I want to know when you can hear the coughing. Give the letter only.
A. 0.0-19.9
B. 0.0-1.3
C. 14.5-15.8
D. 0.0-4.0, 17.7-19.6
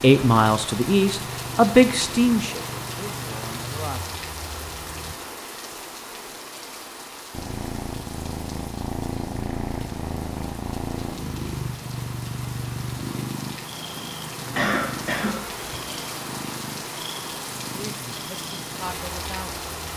C.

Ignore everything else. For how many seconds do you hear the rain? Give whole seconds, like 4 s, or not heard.
20 s.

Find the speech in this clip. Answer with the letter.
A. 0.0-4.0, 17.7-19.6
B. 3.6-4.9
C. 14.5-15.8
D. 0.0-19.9
A.